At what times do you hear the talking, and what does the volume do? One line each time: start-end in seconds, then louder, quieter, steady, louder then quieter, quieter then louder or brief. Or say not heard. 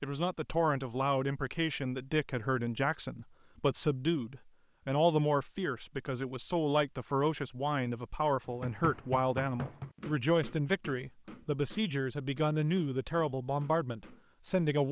0.0-14.8 steady.